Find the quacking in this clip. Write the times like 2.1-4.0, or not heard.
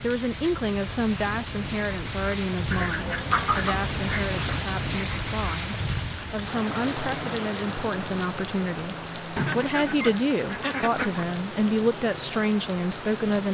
2.7-4.6, 9.3-11.2.